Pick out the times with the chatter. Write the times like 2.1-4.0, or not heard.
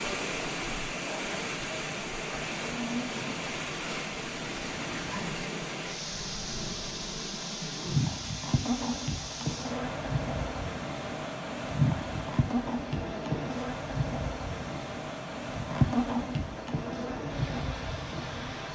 not heard.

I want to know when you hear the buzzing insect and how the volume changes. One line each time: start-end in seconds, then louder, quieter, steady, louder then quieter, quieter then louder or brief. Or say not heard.
0.1-18.6 louder.